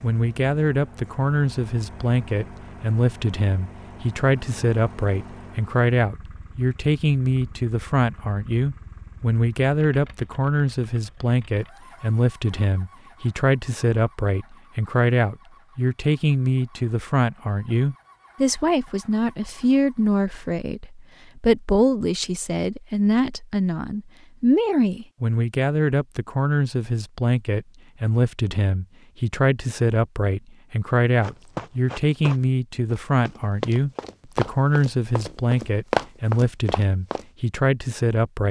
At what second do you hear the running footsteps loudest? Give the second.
36 s.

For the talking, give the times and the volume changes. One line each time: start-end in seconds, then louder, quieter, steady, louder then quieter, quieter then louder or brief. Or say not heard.
0.0-38.4 steady.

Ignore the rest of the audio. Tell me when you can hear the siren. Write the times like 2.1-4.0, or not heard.
not heard.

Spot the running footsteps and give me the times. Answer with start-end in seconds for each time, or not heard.
31.2-37.2.